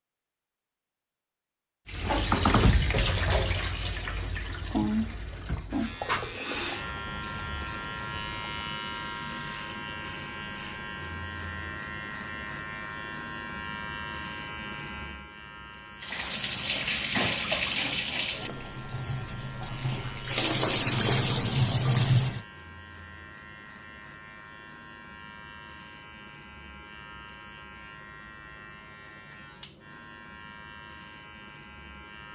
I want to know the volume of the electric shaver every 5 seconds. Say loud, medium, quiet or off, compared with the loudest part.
off, loud, loud, medium, medium, medium, medium.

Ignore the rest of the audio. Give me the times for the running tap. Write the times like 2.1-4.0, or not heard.
1.9-8.7, 16.0-22.4.